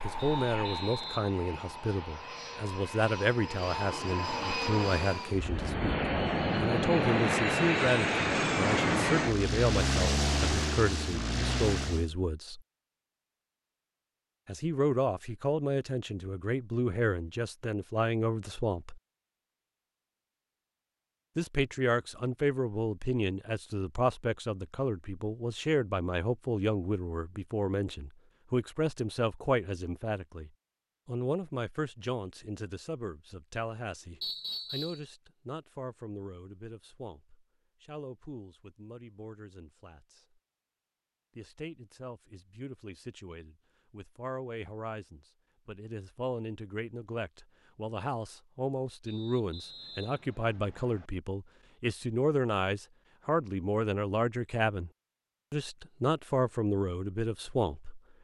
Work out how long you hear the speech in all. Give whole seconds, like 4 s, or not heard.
52 s.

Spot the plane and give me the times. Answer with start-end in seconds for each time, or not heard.
0.0-12.1.